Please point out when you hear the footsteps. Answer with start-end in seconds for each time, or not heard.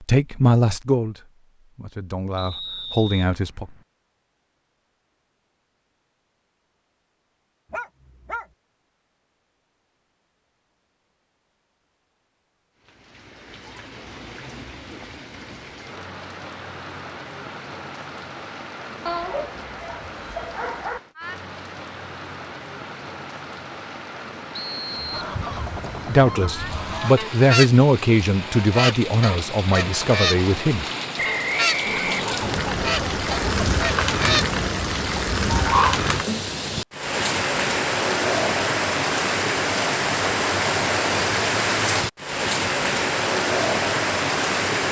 not heard.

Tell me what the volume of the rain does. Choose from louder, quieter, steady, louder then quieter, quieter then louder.
louder.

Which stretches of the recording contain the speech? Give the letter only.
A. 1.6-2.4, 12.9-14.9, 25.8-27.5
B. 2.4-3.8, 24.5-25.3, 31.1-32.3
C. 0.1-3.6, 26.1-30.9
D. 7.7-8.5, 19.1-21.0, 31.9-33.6
C.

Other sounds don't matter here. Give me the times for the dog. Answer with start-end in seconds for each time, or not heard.
7.7-8.5, 19.1-21.0, 31.9-33.6.